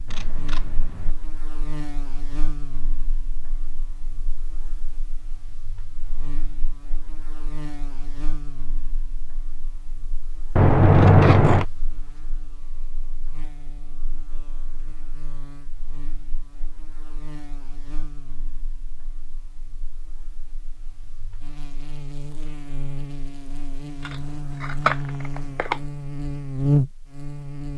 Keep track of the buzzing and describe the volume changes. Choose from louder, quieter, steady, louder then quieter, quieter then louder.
quieter then louder.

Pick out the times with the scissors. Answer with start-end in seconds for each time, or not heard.
0.1-1.1, 10.6-11.7, 24.0-25.8.